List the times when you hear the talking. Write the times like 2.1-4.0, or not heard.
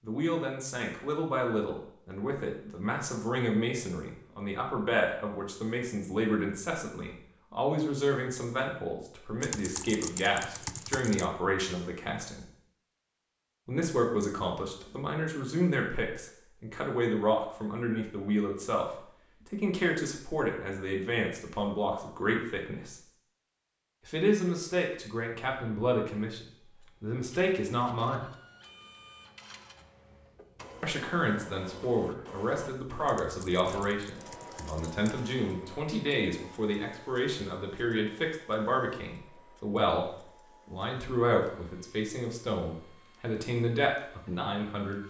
0.0-12.4, 13.7-22.9, 24.1-28.2, 30.8-45.0.